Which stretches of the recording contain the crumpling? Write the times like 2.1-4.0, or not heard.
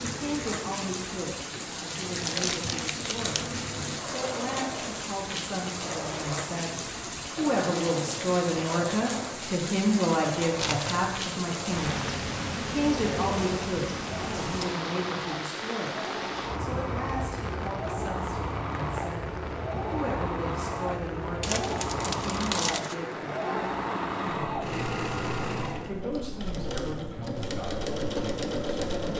2.1-3.5, 10.6-11.2, 21.4-22.9.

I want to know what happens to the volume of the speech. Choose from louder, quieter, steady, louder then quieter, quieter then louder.
louder then quieter.